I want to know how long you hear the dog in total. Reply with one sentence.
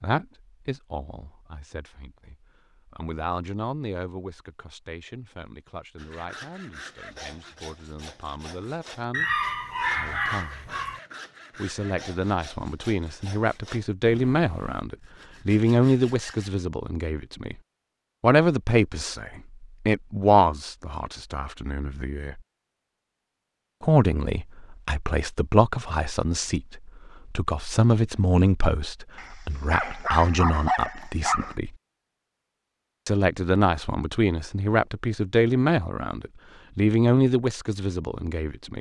You can hear the dog for 4 seconds altogether.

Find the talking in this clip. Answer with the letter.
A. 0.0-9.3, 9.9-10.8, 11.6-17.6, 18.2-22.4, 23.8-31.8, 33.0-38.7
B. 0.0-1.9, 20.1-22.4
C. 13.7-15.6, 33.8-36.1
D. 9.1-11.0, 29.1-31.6
A.